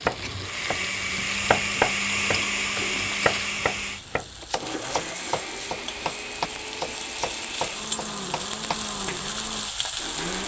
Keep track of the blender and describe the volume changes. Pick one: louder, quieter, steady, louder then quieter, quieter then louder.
quieter.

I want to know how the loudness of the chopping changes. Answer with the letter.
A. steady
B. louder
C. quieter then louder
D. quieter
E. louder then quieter
D.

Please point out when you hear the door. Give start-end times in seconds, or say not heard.
not heard.